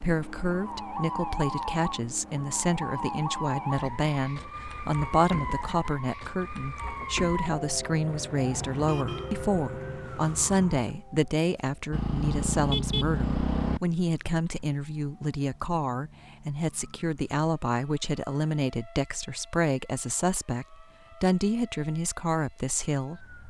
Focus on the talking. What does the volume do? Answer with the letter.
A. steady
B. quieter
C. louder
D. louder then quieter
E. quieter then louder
A.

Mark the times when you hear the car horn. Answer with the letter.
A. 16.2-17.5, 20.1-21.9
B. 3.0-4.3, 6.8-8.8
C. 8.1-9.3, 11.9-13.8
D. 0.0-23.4
C.